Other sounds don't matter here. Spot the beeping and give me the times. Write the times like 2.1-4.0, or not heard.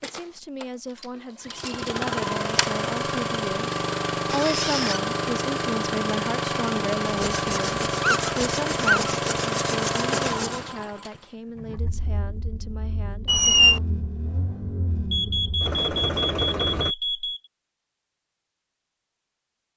15.1-17.4.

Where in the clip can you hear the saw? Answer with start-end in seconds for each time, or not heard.
7.0-10.7.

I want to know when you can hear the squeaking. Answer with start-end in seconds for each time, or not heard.
4.3-5.0, 7.5-9.2, 13.2-13.8.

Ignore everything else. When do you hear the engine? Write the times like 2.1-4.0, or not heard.
0.0-16.9.